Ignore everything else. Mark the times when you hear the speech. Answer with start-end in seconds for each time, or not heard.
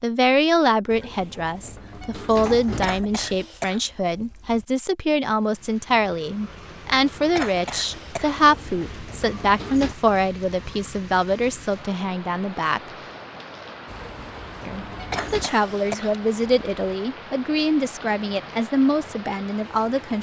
0.0-12.8, 14.7-20.1.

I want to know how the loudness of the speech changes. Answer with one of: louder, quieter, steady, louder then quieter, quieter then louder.
steady.